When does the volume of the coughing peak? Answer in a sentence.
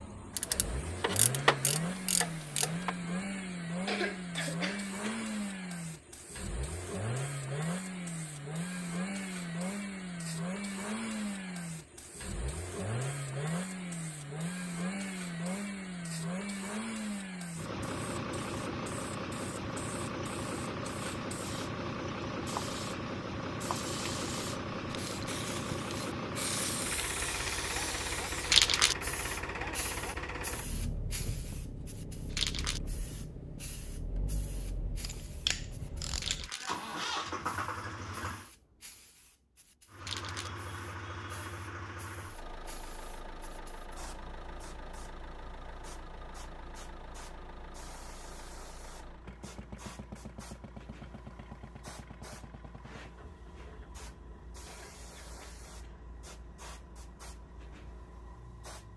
The loudest moment of the coughing is at 4 seconds.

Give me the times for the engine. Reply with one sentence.
You can hear the engine from 0.0 to 38.5 s and from 39.9 to 58.9 s.